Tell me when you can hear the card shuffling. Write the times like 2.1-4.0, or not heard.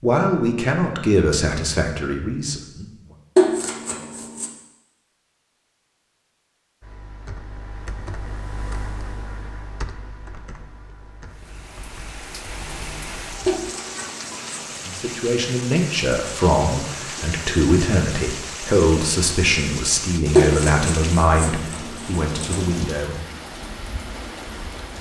3.4-4.5, 13.4-14.7, 20.4-22.6.